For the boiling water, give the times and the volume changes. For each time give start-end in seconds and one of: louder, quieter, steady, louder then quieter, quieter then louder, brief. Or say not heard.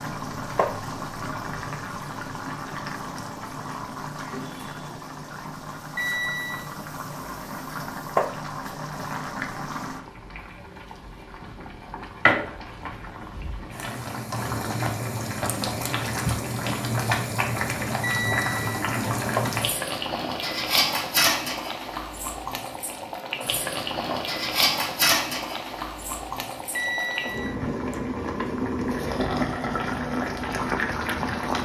0.0-31.6 louder.